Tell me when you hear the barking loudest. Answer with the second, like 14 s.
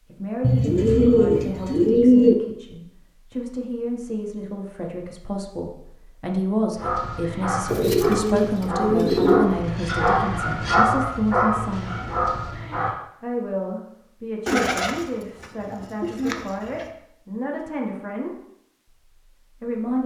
11 s.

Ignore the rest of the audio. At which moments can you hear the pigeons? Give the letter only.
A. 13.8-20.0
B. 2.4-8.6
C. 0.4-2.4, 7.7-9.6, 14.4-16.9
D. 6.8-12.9
C.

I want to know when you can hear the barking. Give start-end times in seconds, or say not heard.
6.8-12.9.